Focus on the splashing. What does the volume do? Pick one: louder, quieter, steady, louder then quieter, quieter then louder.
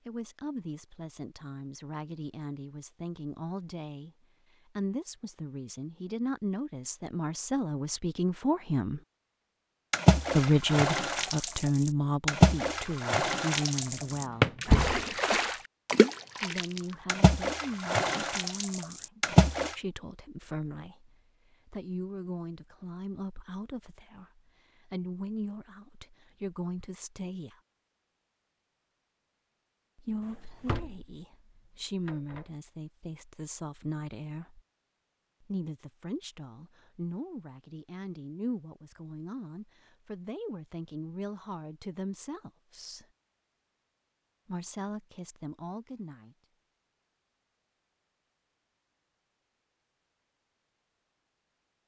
louder then quieter.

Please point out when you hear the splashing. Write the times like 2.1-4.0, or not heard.
9.9-19.8.